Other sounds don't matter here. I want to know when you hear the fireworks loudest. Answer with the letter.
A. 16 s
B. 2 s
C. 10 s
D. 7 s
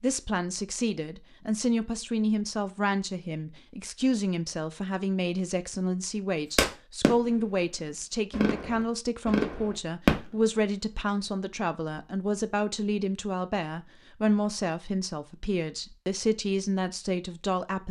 C.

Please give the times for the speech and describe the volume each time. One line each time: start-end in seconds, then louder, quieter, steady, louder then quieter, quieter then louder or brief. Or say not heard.
0.0-17.8 steady.